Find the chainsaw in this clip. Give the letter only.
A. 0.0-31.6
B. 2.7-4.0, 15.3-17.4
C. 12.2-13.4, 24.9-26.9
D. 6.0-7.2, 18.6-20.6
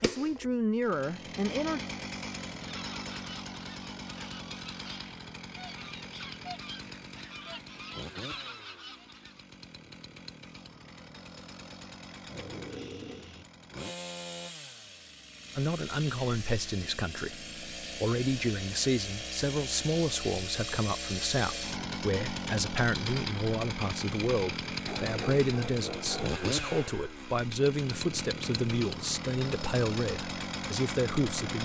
A.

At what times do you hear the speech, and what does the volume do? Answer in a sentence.
You can hear the speech briefly from 0.0 to 1.8 s; and from 15.6 to 31.6 s, at a steady volume.